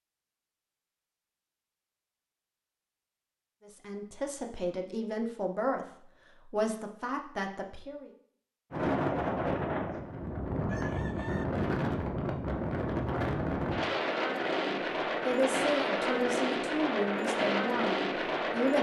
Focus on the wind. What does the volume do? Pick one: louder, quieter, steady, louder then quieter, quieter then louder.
steady.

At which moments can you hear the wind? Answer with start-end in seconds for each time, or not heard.
8.7-18.7.